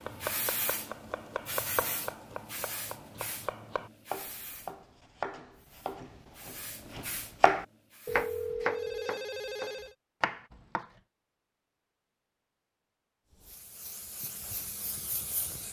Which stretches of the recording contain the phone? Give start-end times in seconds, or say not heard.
8.1-9.9.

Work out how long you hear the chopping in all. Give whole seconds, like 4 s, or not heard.
11 s.